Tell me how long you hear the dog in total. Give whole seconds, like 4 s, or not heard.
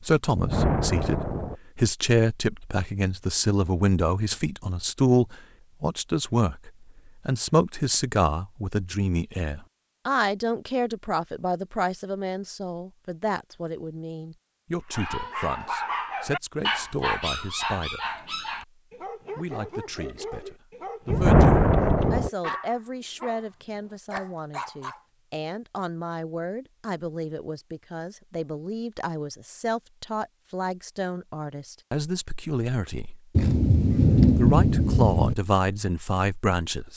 10 s.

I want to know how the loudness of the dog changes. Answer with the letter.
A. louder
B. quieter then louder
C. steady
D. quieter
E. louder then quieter
D.